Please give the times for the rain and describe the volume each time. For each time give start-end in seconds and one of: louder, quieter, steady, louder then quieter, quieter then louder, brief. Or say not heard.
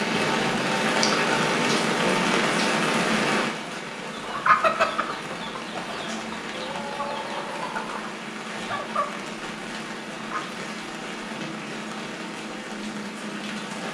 0.0-13.8 quieter.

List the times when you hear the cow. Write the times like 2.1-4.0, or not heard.
not heard.